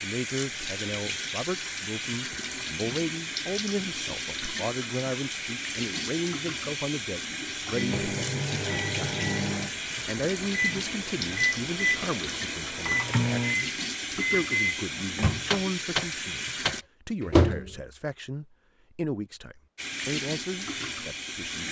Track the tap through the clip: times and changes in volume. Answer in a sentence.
The tap can be heard from 0.0 to 16.9 s, at a steady volume; and briefly from 19.8 to 21.6 s.